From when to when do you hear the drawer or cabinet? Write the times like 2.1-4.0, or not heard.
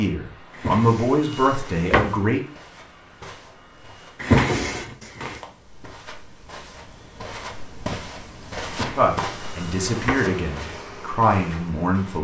0.6-2.2, 4.2-5.4, 8.7-10.2.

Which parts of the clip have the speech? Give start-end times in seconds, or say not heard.
0.0-2.4, 8.9-12.2.